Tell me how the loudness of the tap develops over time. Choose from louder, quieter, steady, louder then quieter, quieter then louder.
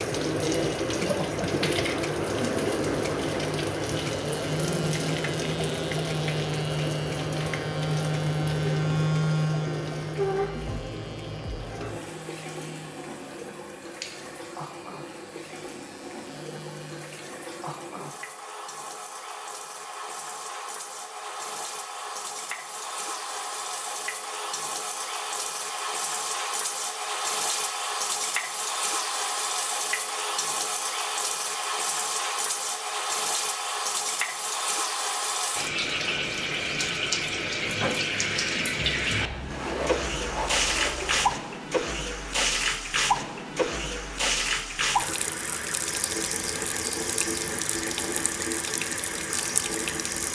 quieter then louder.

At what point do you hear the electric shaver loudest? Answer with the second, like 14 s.
9 s.